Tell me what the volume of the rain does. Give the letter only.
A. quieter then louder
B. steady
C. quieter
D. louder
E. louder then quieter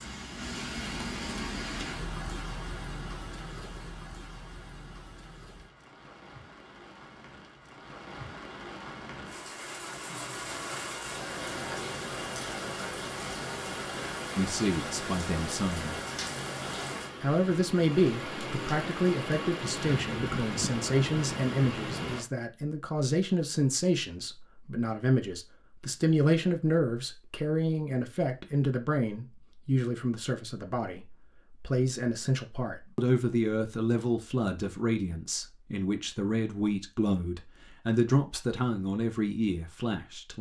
A.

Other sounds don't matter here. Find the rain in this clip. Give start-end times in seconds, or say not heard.
0.0-22.2.